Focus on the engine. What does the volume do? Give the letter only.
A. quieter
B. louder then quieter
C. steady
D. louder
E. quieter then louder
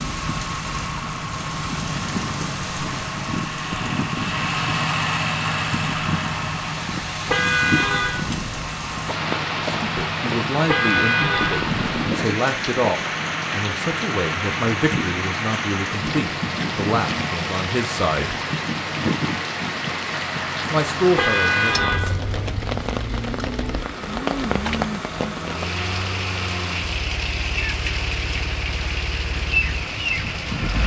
A.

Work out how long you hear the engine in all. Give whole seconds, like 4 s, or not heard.
31 s.